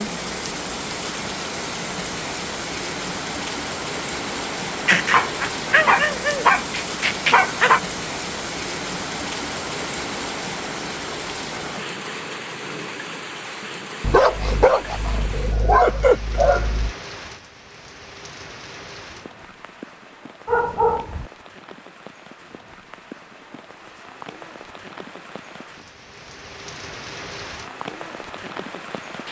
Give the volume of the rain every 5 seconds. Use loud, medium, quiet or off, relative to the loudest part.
loud, loud, loud, medium, quiet, medium.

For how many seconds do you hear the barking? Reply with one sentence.
You can hear the barking for 7 seconds altogether.